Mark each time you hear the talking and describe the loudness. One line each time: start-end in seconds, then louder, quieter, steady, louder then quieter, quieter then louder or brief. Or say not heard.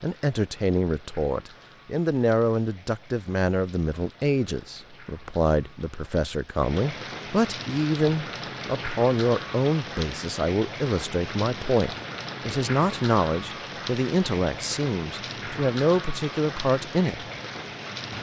0.0-17.2 steady.